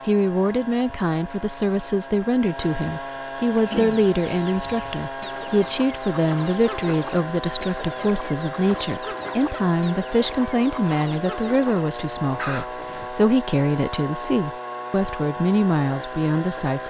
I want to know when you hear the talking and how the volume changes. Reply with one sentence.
The talking can be heard from 0.1 to 16.8 s, at a steady volume.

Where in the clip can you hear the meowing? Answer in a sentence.
You can't hear the meowing here.